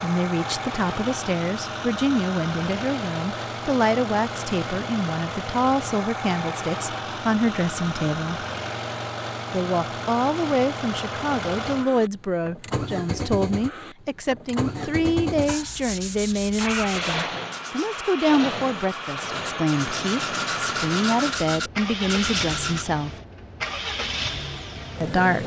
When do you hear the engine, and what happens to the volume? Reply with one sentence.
You can hear the engine from 0.0 to 25.4 s, at a steady volume.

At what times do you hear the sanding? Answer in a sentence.
The sanding can be heard from 15.4 to 22.9 s.